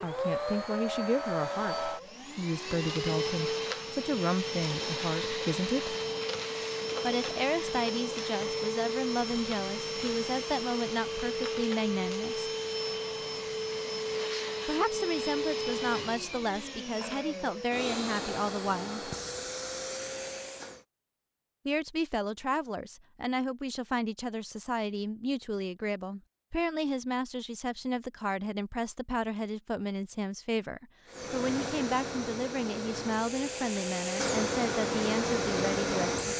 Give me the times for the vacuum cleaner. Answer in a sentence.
The vacuum cleaner can be heard from 0.0 to 20.8 s and from 31.1 to 36.3 s.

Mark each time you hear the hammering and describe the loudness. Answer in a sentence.
The hammering can't be heard in this clip.